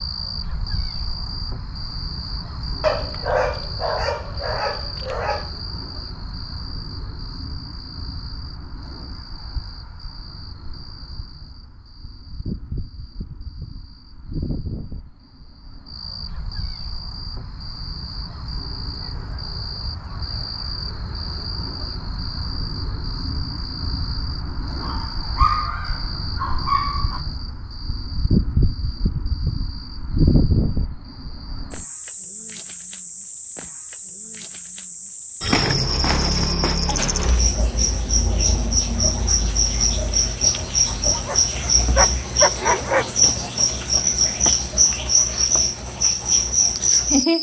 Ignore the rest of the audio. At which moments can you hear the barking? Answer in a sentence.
The barking can be heard from 2.8 to 5.5 s, from 24.8 to 27.2 s and from 41.1 to 43.1 s.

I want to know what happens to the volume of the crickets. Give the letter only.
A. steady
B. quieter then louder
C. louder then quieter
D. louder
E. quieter
D.